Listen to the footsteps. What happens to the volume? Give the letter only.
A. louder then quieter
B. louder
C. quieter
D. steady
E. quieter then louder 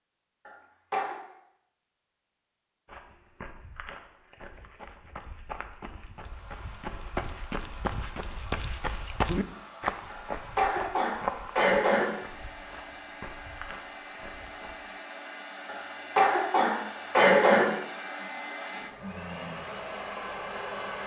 A.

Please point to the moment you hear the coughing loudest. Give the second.
17 s.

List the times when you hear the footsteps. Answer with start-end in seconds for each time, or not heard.
2.9-14.8.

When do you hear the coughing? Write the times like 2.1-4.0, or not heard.
0.5-1.1, 10.1-12.1, 15.7-17.6.